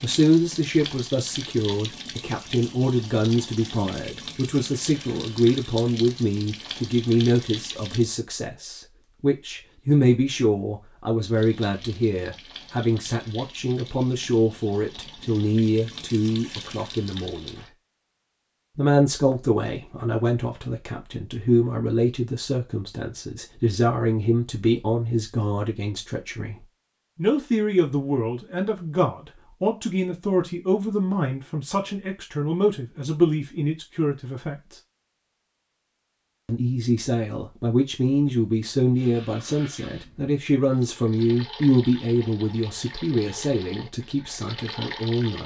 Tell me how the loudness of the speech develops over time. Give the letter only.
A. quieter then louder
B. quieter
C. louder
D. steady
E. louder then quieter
D.